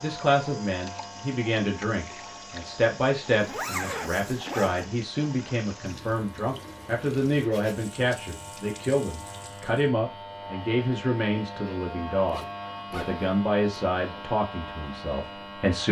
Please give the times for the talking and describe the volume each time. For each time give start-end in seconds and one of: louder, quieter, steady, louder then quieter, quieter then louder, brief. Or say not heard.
0.0-15.8 steady.